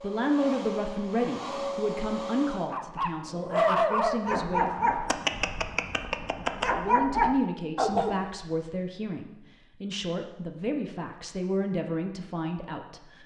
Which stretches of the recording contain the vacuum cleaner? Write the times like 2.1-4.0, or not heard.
0.0-2.8.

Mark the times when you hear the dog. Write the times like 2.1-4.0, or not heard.
2.5-8.2.